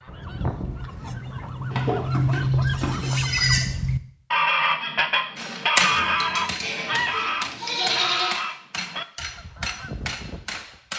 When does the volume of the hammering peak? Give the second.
6 s.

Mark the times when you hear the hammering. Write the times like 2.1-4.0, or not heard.
5.3-10.9.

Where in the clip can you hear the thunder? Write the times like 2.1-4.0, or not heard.
0.1-3.8.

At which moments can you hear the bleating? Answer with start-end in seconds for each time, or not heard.
1.7-3.6, 5.8-8.3.